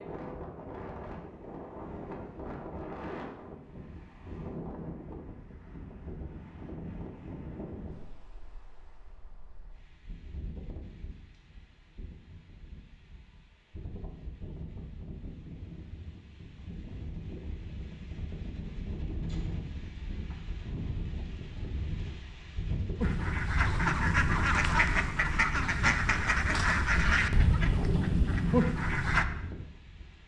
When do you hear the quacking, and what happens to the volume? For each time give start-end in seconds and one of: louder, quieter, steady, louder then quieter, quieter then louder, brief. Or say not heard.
23.0-29.2 steady.